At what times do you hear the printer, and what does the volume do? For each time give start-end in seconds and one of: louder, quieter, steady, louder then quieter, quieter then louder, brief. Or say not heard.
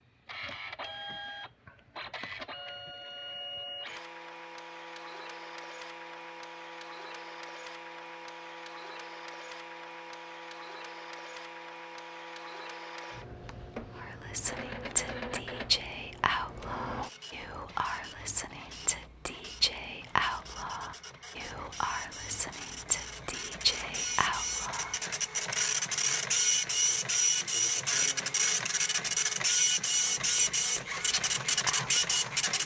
0.1-32.6 louder.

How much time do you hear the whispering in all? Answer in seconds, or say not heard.
14 s.